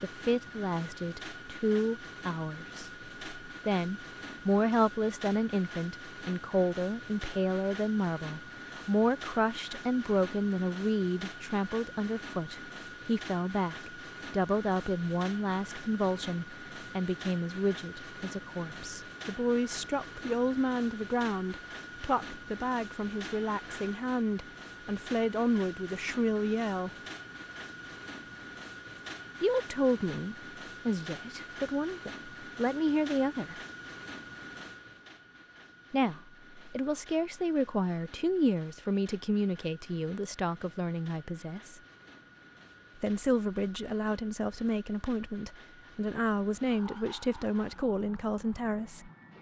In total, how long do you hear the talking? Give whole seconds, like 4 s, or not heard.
43 s.